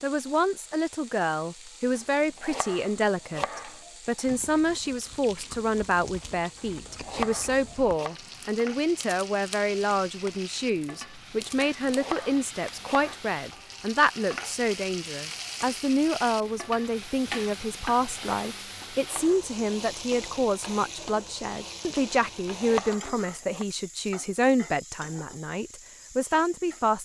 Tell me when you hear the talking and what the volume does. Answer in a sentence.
You can hear the talking from 0.0 to 27.0 s, at a steady volume.